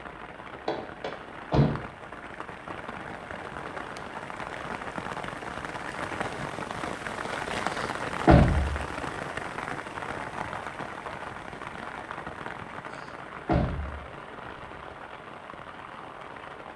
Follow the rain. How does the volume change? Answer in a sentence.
The loudness of the rain goes up, then down.